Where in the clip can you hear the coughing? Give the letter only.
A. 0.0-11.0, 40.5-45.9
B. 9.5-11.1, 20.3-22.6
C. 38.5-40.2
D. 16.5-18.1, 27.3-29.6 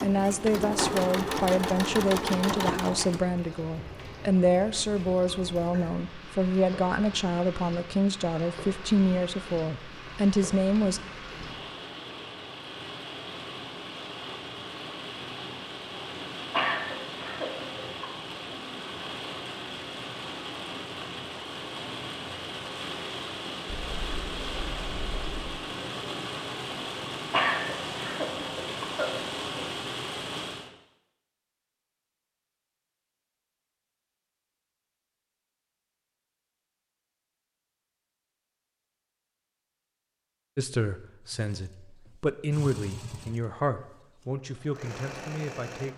D.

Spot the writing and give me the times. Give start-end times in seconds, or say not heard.
23.6-25.4.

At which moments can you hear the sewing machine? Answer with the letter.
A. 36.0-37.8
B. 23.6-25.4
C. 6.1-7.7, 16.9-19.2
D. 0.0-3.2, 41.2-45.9
D.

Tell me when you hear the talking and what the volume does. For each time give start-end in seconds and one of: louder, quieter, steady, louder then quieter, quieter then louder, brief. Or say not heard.
0.0-11.0 steady
40.5-45.9 louder then quieter.